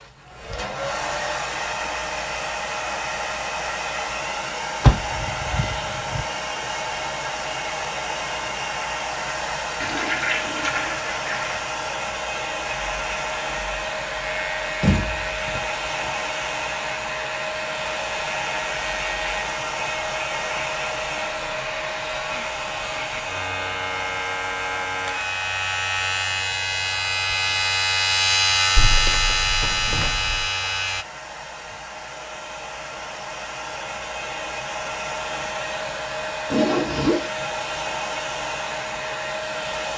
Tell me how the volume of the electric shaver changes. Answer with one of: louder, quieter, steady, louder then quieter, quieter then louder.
louder.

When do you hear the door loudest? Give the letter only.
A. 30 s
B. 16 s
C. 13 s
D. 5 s
D.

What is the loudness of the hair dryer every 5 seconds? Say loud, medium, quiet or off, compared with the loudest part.
loud, loud, loud, loud, loud, medium, medium, loud.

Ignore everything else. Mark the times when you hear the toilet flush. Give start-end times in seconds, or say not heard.
9.8-11.6, 36.5-37.2.